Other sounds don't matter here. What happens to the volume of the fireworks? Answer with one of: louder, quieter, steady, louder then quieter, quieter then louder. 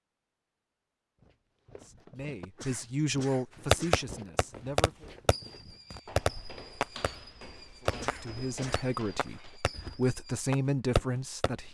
quieter then louder.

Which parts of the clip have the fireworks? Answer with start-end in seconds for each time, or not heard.
3.7-11.5.